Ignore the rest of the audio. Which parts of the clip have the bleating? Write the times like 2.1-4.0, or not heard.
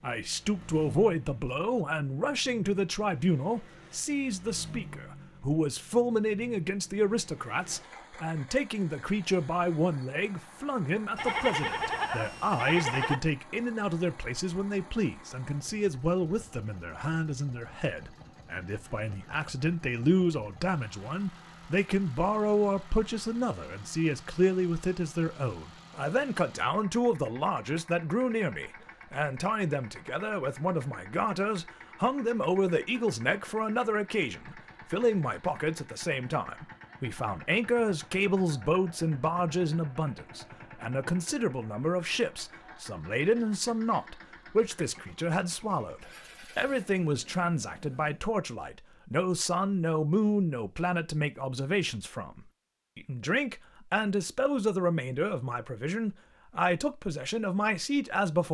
11.2-13.2.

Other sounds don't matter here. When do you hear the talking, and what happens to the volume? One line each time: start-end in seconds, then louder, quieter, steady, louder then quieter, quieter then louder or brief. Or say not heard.
0.0-58.4 steady.